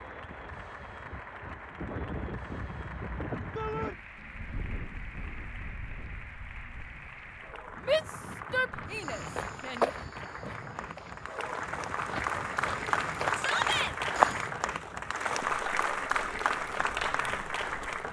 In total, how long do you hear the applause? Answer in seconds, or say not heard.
18 s.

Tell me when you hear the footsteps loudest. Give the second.
14 s.